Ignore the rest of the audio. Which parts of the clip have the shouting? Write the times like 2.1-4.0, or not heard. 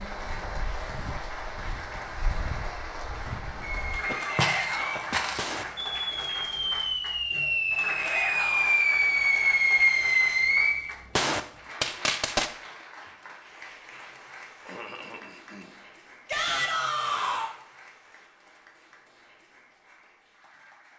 4.2-5.1, 8.0-8.8, 16.2-17.5.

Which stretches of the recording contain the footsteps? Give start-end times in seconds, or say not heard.
0.0-5.5.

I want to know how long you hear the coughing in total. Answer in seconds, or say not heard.
2 s.